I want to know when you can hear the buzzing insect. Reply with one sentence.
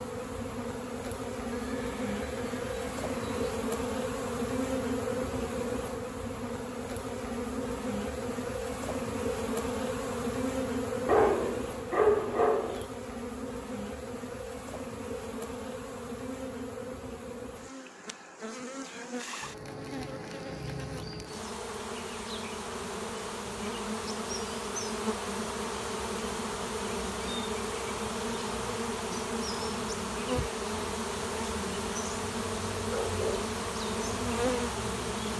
The buzzing insect can be heard from 0.0 to 35.3 s.